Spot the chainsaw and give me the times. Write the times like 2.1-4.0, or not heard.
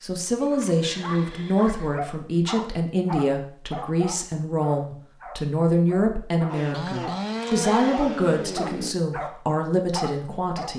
6.5-8.9.